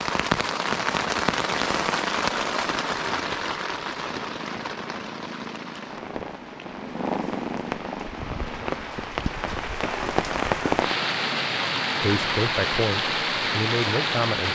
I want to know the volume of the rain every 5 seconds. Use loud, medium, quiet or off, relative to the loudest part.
loud, medium, loud.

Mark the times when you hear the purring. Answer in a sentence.
The purring can be heard from 4.0 to 8.9 s.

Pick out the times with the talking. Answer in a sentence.
The talking can be heard from 12.0 to 14.5 s.